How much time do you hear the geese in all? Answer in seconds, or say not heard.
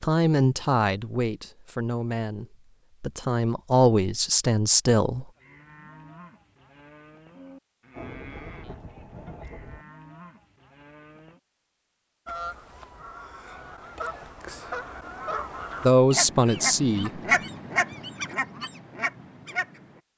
8 s.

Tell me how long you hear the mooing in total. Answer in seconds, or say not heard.
6 s.